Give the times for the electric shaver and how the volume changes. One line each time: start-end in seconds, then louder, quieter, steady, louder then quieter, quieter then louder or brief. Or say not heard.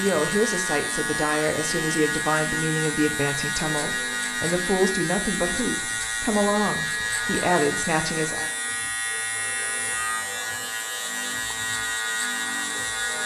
0.0-13.2 steady.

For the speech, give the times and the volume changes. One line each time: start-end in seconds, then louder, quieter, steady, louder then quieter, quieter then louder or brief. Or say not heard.
0.0-8.5 steady.